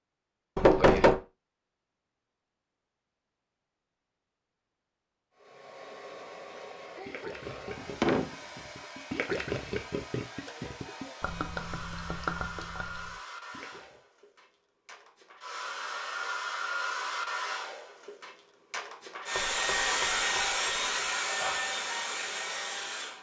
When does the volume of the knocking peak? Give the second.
1 s.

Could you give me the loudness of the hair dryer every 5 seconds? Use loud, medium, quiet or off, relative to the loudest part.
off, quiet, quiet, loud, loud.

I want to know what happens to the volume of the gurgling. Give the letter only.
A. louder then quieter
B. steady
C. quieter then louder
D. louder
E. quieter
A.